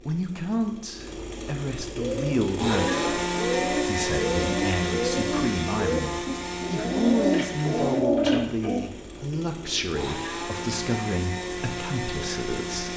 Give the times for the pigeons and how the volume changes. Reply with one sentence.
You can hear the pigeons from 1.9 to 8.8 s, getting louder.